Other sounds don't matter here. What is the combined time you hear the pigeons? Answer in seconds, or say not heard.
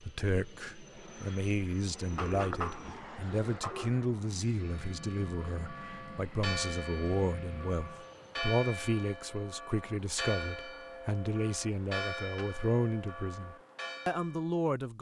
2 s.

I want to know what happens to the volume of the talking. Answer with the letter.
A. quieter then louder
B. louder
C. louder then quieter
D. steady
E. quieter
D.